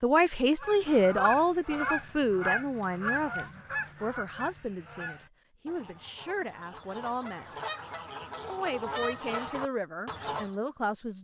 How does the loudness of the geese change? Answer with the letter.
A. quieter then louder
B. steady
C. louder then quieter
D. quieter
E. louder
A.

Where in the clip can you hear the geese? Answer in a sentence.
You can hear the geese from 0.6 to 10.5 s.